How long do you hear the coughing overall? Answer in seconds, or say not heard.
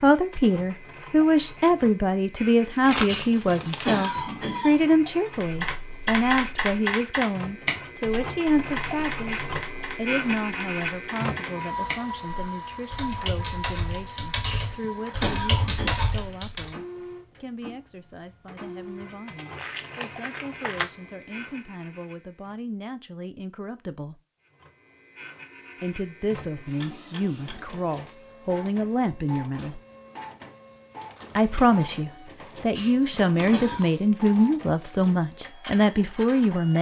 5 s.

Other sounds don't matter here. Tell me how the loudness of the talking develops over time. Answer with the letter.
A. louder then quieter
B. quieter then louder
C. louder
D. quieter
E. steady
B.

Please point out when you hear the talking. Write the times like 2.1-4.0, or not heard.
0.0-24.1, 25.8-29.8, 31.4-36.7.